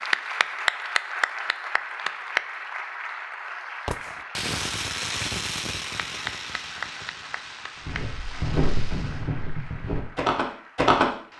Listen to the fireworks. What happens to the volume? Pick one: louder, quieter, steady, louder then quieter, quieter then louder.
quieter.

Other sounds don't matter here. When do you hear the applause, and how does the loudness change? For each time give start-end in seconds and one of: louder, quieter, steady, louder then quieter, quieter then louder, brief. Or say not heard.
0.0-11.3 quieter.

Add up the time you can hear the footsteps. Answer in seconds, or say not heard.
3 s.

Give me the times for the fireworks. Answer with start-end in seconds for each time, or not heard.
3.9-9.3.